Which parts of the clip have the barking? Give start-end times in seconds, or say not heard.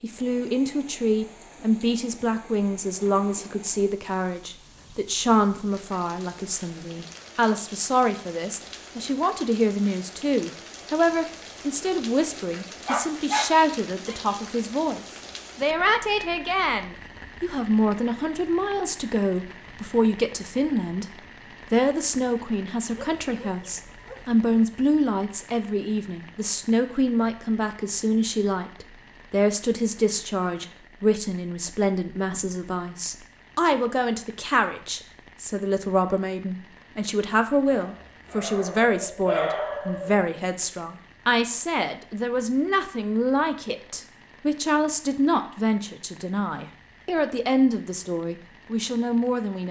12.8-14.2, 22.9-24.6, 37.7-40.2.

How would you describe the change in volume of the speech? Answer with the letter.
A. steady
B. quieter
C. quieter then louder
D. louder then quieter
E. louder
A.